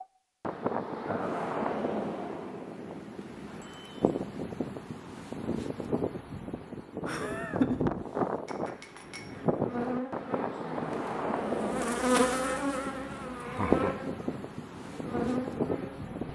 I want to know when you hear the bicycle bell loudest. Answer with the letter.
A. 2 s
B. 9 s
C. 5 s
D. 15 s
B.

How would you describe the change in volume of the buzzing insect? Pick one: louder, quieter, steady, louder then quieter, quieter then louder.
louder then quieter.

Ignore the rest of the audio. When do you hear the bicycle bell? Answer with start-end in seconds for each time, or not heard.
3.6-4.0, 8.4-9.4.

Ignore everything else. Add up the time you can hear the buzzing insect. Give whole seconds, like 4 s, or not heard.
7 s.